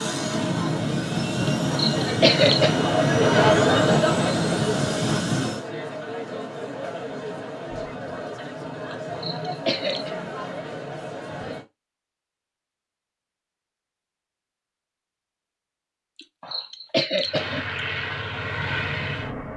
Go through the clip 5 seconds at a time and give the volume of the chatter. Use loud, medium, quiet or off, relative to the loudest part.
loud, medium, medium, off.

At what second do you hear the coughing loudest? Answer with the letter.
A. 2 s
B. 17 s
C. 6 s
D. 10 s
A.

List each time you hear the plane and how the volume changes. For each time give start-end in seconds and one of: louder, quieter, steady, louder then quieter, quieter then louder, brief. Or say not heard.
0.0-5.7 steady
17.2-19.5 brief.